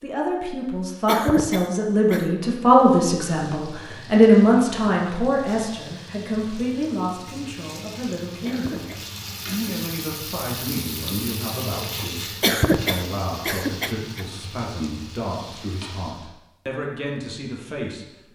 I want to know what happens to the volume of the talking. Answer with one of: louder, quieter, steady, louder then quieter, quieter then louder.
quieter.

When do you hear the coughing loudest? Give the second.
13 s.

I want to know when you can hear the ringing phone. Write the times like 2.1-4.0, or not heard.
not heard.